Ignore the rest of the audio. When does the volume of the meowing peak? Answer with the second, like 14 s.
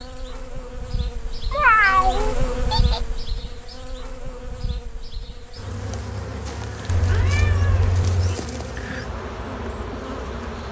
2 s.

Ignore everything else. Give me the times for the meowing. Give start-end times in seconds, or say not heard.
1.5-3.0, 6.8-8.4.